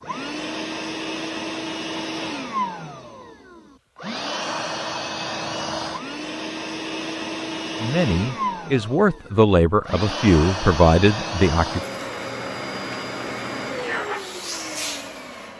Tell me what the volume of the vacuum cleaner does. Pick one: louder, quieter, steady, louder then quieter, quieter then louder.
steady.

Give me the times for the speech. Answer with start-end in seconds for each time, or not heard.
7.8-11.8.